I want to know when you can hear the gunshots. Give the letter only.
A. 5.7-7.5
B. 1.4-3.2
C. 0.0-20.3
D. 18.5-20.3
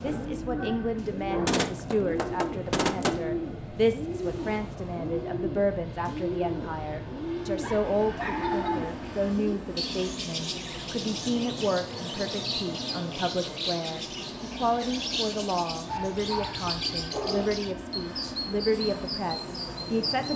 B.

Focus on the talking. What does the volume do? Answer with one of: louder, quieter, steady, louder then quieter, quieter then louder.
steady.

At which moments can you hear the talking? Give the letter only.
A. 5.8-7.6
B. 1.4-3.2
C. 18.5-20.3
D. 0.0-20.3
D.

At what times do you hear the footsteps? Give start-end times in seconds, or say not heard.
not heard.